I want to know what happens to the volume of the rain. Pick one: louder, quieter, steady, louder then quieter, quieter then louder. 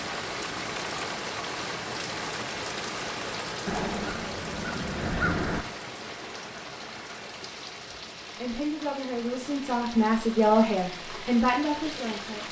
quieter.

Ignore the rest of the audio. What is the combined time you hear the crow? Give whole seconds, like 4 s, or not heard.
2 s.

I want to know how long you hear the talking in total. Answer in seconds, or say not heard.
4 s.